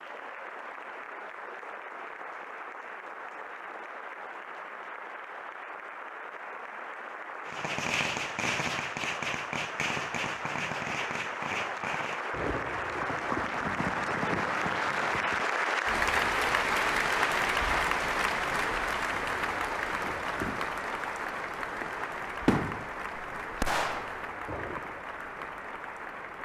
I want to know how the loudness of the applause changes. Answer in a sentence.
The volume of the applause goes up, then down.